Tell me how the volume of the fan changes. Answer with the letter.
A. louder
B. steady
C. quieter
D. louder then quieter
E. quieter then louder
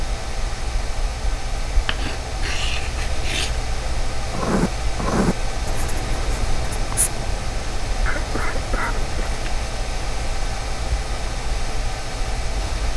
B.